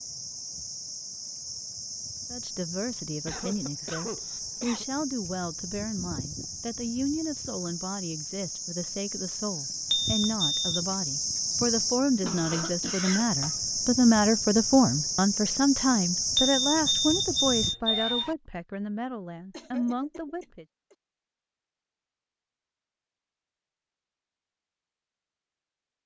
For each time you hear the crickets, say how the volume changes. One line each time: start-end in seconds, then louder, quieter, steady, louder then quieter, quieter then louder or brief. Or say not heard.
0.0-17.8 louder.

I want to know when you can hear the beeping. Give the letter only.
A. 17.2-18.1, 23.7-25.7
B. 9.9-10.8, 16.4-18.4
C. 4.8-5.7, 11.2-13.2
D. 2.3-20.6
B.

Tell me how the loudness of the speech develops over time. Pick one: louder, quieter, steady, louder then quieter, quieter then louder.
louder then quieter.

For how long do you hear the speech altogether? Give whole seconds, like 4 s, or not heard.
18 s.